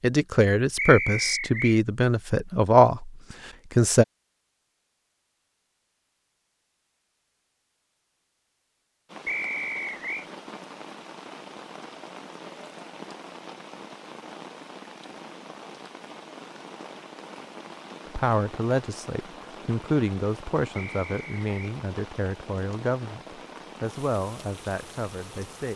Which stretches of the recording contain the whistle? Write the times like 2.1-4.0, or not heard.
0.8-1.8, 9.2-10.2, 20.8-21.8.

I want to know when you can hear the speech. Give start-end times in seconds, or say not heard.
0.0-4.0, 18.1-25.7.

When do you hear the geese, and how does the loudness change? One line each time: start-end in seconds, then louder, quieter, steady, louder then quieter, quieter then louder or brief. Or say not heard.
not heard.